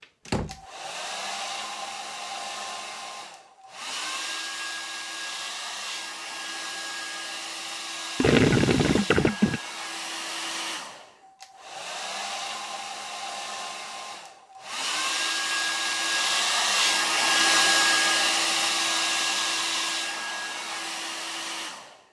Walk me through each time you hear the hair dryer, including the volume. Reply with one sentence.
The hair dryer can be heard from 0.0 to 22.0 s, getting louder.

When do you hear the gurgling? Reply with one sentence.
The gurgling can be heard from 8.2 to 9.6 s.